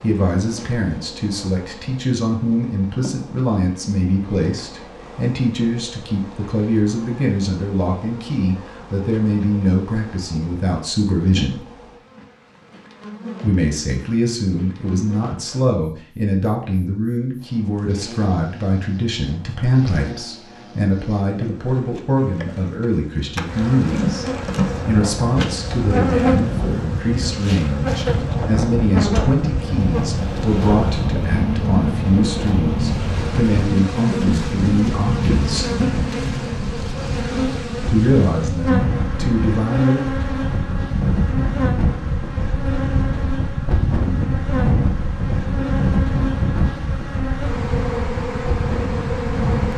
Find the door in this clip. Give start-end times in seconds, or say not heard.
not heard.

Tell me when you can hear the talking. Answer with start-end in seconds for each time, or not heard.
0.0-11.6, 13.4-35.7, 37.9-40.0.